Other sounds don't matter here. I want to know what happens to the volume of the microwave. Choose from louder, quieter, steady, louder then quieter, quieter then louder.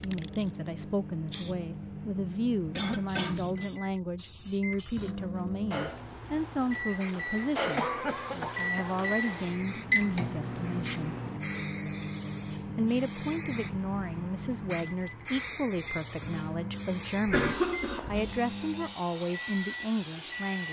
louder then quieter.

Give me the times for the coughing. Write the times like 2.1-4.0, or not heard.
2.8-3.6, 7.2-9.0, 17.2-18.3.